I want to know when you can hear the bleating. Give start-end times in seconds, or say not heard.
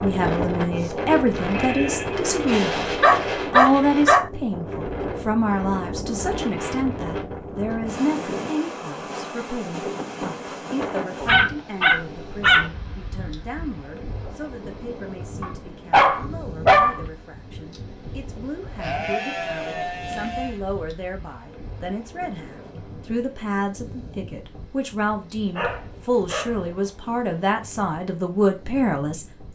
0.8-2.2, 18.8-20.6.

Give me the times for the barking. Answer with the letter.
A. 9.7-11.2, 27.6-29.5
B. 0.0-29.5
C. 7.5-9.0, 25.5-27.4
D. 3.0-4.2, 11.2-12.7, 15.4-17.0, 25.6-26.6
D.